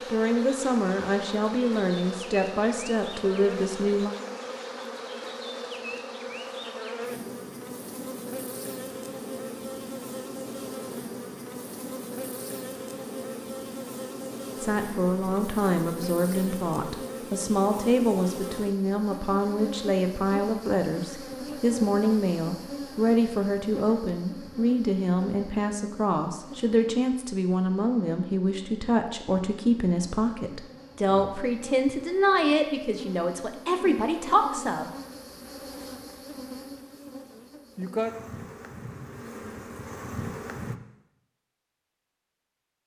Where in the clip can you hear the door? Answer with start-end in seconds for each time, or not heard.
not heard.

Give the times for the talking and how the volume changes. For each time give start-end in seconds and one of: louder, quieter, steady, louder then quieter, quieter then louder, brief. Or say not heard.
0.1-4.2 steady
14.6-34.9 steady.